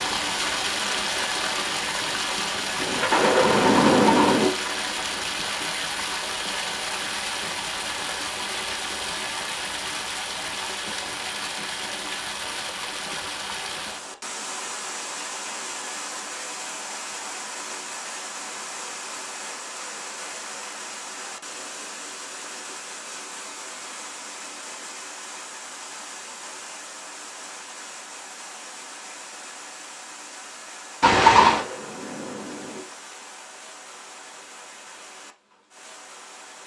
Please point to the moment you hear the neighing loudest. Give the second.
31 s.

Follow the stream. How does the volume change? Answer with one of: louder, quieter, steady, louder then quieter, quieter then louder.
quieter.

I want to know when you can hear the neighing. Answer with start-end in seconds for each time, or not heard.
3.5-4.5, 31.0-31.6.